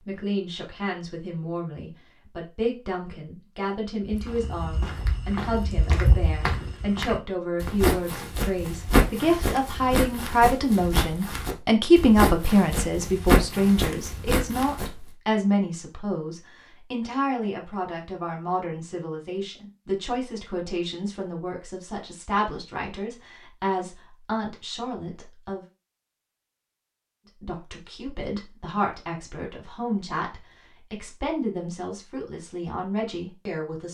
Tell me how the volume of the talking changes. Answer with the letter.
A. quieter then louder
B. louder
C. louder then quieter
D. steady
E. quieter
C.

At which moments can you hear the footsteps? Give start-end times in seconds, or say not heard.
4.1-14.9.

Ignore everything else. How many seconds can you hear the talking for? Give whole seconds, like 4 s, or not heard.
32 s.